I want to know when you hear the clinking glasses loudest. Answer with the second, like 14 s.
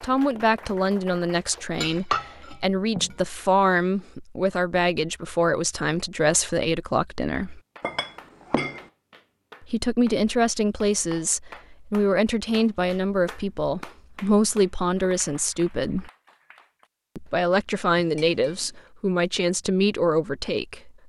2 s.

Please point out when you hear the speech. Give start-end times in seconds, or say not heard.
0.0-7.6, 9.7-16.1, 17.1-20.9.